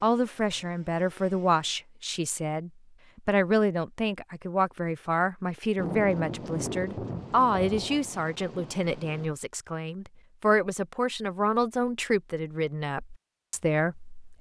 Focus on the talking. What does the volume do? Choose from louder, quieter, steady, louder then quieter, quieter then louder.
steady.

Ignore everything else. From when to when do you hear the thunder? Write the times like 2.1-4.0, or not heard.
5.8-9.3.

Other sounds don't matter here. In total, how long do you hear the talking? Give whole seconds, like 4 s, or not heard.
14 s.